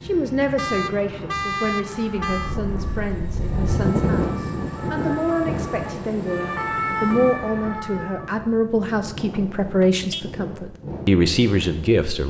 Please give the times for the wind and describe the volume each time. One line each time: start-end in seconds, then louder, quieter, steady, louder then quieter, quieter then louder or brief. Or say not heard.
2.2-12.1 quieter.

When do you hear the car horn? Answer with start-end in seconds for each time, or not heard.
0.6-2.5, 9.3-10.3.